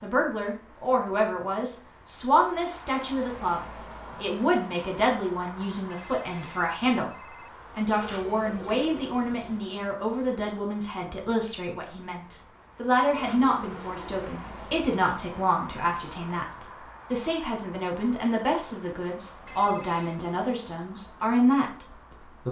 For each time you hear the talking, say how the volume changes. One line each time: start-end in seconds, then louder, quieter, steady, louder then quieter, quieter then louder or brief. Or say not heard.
0.0-22.4 steady.